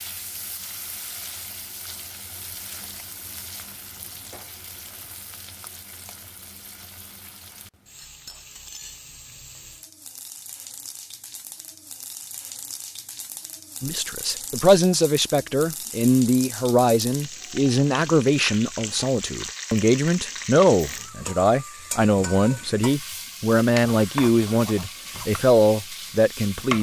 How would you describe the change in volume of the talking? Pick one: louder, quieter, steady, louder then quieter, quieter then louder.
steady.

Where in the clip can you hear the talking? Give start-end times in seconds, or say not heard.
13.8-26.7.